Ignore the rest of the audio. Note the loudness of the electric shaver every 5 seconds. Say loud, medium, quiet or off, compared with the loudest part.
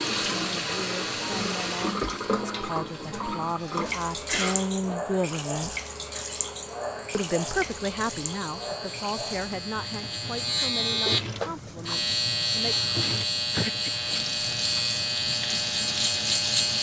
quiet, quiet, loud, loud.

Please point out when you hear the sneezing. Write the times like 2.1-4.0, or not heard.
3.6-5.0, 13.5-13.9.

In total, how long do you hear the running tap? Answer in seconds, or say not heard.
17 s.